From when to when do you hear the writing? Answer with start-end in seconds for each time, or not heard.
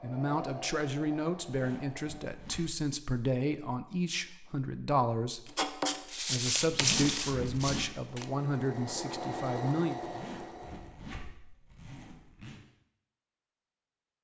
5.5-8.2.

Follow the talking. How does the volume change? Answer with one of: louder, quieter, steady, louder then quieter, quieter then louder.
steady.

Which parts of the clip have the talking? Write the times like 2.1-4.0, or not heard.
0.0-10.0.